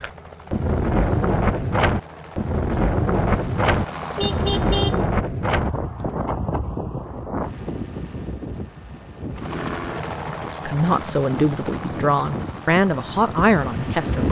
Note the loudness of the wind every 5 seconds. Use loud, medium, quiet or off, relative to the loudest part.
loud, medium, medium.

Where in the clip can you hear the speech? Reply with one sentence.
You can hear the speech from 10.7 to 14.2 s.